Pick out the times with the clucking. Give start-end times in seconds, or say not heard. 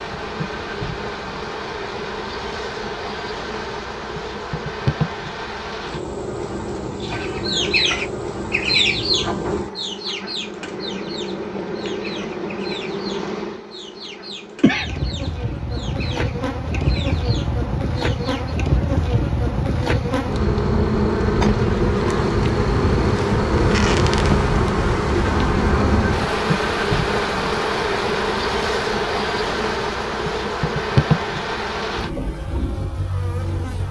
7.0-18.6.